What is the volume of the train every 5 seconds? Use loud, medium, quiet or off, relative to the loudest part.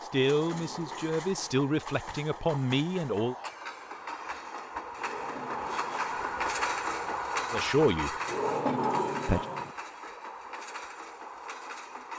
medium, loud, medium.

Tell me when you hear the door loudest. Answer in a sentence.
The loudest moment of the door is at 9 seconds.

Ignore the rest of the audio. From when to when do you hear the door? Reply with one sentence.
The door can be heard from 0.3 to 1.6 s, from 5.0 to 6.4 s and from 8.2 to 9.8 s.